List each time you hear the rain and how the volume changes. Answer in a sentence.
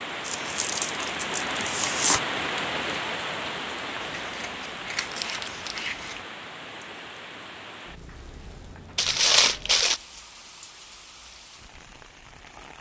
You can hear the rain from 0.0 to 12.7 s, getting quieter.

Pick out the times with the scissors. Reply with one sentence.
You can hear the scissors from 4.0 to 6.2 s.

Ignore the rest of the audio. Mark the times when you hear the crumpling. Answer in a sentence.
The crumpling can be heard from 0.2 to 2.2 s, from 5.0 to 5.9 s and from 8.9 to 10.0 s.